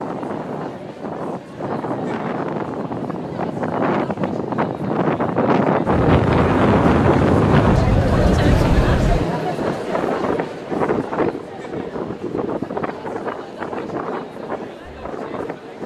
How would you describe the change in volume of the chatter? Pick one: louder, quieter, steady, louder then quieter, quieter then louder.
louder then quieter.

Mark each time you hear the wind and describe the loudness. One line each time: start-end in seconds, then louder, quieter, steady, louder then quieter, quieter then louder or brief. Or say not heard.
0.0-15.8 louder then quieter.